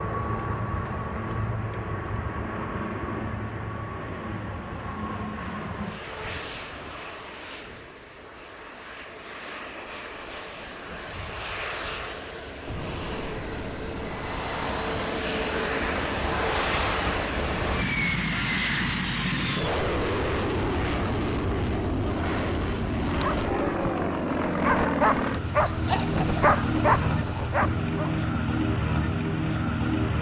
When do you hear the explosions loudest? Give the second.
13 s.